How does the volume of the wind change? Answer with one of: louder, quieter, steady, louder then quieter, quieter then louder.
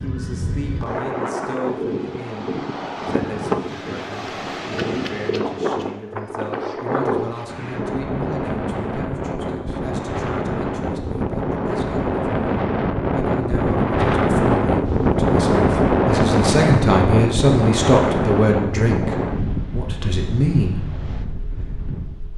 louder then quieter.